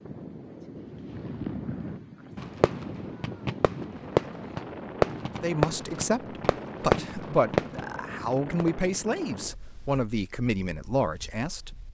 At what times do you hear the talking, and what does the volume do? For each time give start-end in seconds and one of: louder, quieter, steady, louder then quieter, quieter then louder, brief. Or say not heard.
5.4-11.7 steady.